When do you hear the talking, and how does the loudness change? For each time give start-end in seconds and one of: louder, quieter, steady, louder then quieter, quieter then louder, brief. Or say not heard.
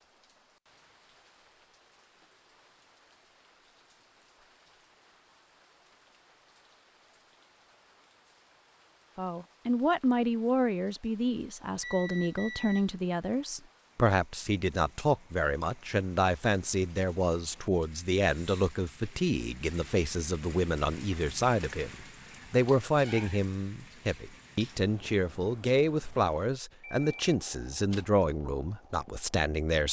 9.2-29.8 steady.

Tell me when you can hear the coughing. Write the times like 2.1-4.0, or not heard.
not heard.